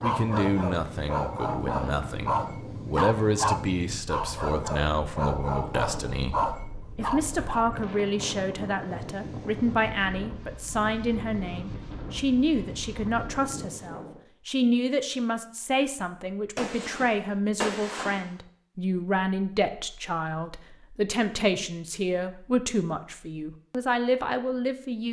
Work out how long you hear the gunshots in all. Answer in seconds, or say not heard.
2 s.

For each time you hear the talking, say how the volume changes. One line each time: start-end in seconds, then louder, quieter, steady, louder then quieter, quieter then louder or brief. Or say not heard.
0.0-25.0 steady.